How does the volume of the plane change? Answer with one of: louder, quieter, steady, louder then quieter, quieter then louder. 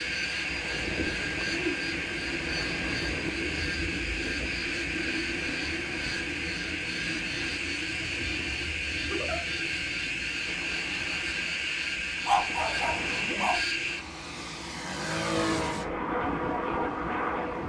steady.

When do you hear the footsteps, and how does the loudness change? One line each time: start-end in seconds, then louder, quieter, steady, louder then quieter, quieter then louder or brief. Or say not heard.
not heard.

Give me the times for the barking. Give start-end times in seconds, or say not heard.
12.2-13.6.